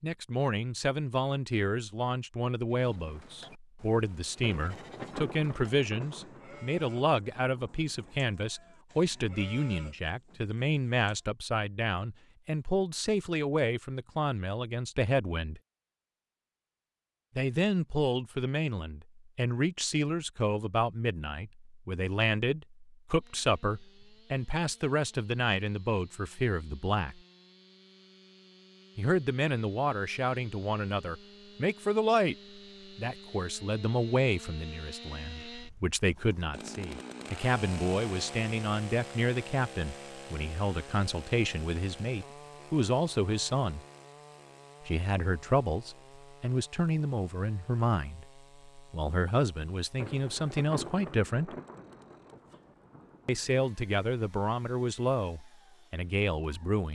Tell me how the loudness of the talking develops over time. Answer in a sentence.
The volume of the talking stays about the same.